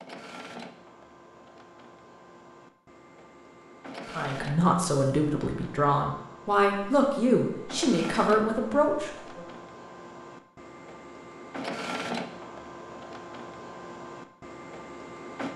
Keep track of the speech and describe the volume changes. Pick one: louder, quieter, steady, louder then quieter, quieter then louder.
steady.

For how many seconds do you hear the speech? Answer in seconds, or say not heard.
5 s.